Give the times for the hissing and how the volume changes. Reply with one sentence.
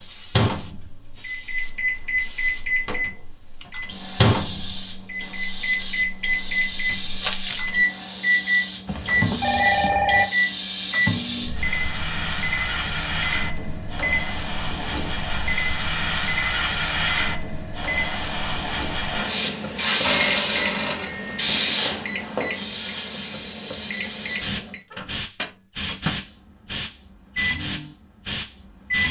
You can hear the hissing from 0.0 to 29.0 s, getting louder.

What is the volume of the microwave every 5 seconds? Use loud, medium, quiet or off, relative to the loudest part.
loud, loud, loud, medium, medium, medium.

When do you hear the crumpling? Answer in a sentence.
The crumpling can be heard from 7.2 to 7.8 s.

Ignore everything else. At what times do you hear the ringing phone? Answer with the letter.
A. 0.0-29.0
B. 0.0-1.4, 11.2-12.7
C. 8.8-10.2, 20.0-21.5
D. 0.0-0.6
C.